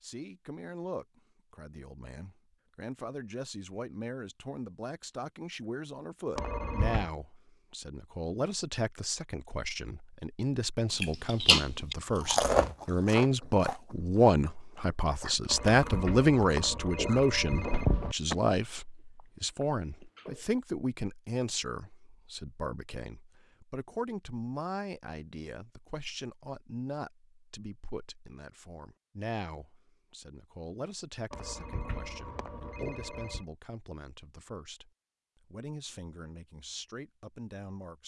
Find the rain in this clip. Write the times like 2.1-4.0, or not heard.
not heard.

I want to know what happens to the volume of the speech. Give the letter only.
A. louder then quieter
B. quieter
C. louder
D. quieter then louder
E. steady
A.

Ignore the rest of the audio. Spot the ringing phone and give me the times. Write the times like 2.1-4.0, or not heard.
6.3-7.1, 15.4-18.1, 31.3-33.5.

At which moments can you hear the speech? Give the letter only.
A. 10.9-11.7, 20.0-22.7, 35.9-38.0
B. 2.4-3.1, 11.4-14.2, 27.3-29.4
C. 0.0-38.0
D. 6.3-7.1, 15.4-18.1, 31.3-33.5
C.